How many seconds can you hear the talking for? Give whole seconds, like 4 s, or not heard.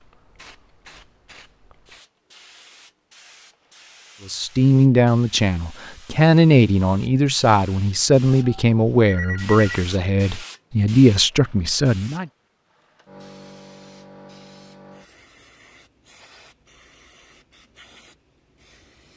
8 s.